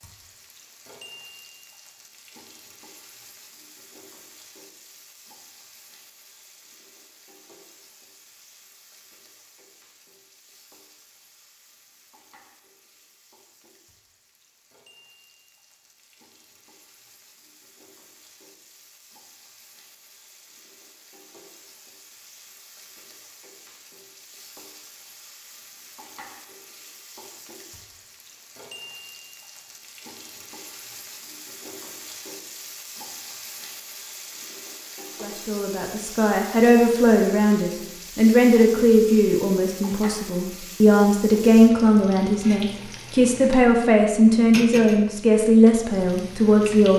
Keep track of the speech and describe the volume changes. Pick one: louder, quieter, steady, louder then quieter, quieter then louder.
steady.